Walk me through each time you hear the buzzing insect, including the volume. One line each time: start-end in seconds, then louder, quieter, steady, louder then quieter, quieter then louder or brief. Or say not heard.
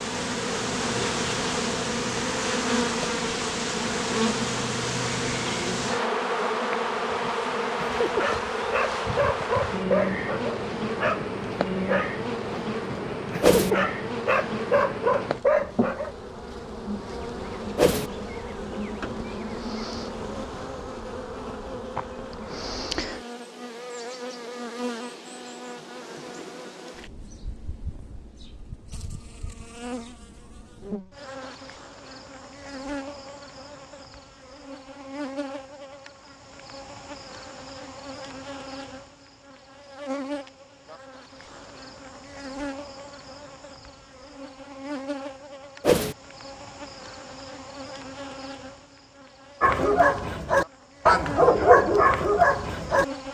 0.0-53.2 quieter.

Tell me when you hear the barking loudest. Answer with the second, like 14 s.
52 s.